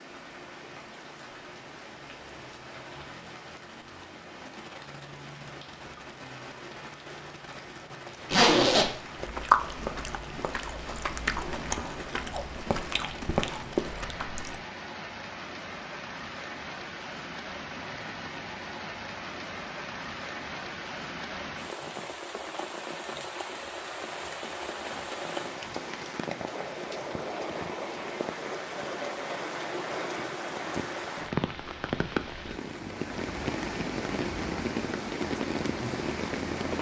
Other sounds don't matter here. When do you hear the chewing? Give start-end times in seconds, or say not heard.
9.2-14.6.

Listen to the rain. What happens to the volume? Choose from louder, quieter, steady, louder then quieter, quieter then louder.
louder.